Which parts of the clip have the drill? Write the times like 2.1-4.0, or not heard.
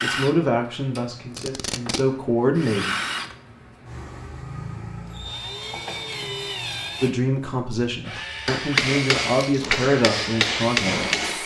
0.0-11.4.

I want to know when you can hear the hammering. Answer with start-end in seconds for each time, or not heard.
8.2-11.4.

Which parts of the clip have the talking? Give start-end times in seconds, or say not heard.
0.0-3.0, 7.0-11.4.